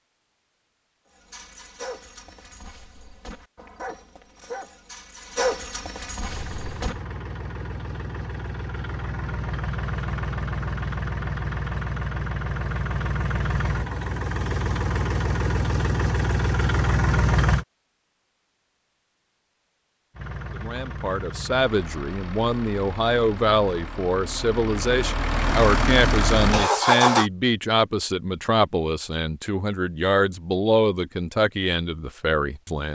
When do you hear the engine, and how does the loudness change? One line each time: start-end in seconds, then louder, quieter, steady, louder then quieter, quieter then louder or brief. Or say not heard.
6.2-17.6 louder
20.1-27.3 louder.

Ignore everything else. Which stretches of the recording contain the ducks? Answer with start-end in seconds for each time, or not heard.
not heard.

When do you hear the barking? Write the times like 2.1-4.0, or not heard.
1.1-7.0.